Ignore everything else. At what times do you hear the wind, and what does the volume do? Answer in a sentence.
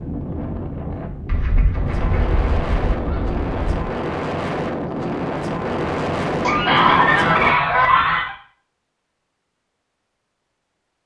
You can hear the wind from 0.0 to 7.5 s, getting louder.